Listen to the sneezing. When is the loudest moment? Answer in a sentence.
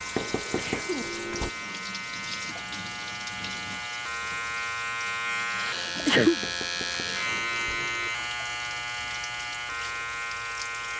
The volume of the sneezing peaks at 6 seconds.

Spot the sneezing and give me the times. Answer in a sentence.
The sneezing can be heard from 0.6 to 1.1 s and from 5.5 to 6.4 s.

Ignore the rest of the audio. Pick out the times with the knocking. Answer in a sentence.
You can hear the knocking from 0.1 to 1.5 s and from 6.4 to 8.1 s.